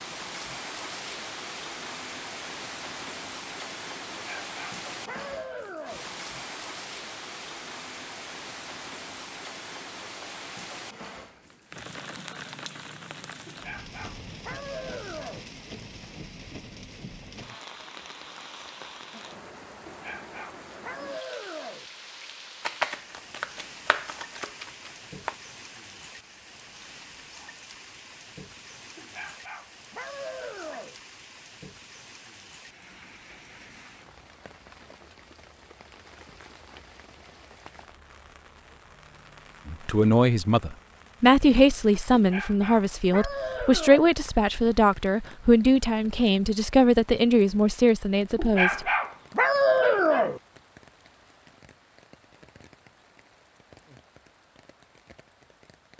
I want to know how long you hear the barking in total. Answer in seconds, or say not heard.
12 s.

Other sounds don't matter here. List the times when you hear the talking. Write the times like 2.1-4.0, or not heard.
39.6-48.9.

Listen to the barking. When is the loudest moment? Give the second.
50 s.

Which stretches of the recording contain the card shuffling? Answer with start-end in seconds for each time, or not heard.
22.6-25.4.